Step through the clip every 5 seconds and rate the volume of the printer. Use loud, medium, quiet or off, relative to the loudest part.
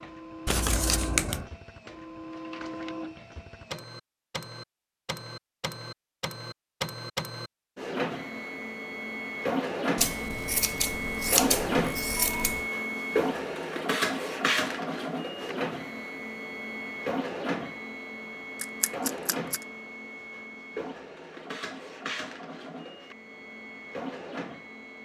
medium, loud, loud, medium, medium.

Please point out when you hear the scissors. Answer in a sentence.
The scissors can be heard from 0.5 to 1.5 s, from 9.9 to 12.7 s and from 18.6 to 19.6 s.